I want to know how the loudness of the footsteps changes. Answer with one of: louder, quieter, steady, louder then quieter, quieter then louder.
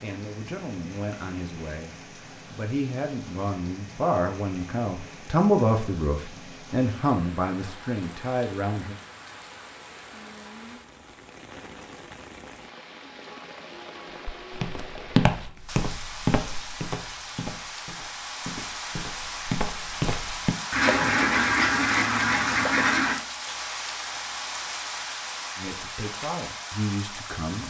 quieter then louder.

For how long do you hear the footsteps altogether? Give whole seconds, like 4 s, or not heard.
7 s.